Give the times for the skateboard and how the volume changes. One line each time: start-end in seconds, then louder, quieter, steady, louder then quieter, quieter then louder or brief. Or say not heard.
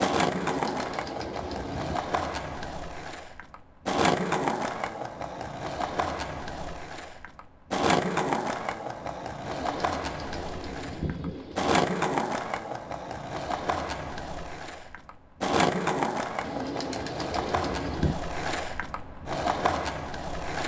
0.0-20.6 steady.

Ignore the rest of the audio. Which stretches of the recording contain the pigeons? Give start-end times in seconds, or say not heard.
0.3-2.0, 9.4-11.8, 16.4-18.2.